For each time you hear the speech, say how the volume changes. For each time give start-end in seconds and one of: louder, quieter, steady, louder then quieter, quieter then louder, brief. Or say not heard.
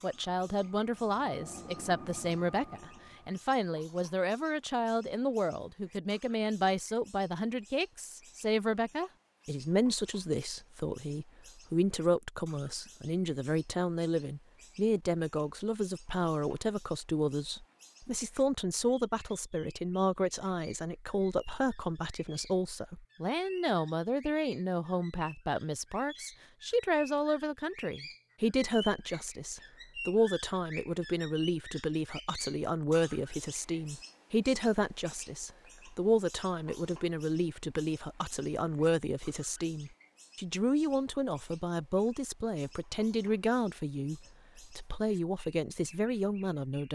0.0-46.8 steady.